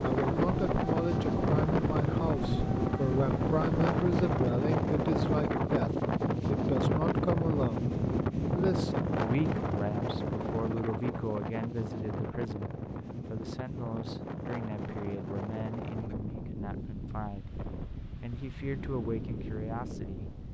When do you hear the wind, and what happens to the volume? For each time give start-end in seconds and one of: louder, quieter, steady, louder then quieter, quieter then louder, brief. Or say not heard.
0.0-20.4 quieter.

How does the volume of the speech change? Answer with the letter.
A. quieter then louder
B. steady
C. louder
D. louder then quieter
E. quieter
E.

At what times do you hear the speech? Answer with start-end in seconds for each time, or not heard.
0.0-20.3.